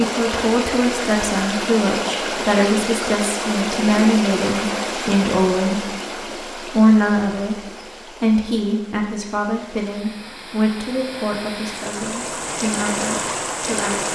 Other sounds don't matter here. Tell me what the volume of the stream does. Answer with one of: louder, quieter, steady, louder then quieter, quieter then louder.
quieter then louder.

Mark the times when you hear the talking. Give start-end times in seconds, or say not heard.
0.0-14.1.